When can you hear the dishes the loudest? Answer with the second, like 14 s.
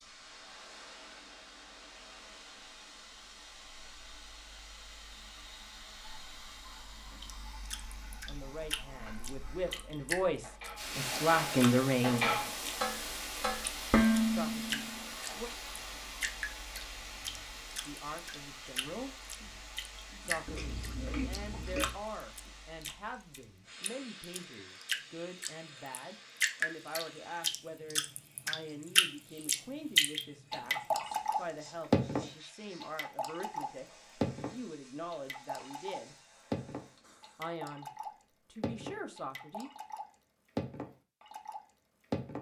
14 s.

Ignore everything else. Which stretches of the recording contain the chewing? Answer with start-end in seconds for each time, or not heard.
20.4-22.0.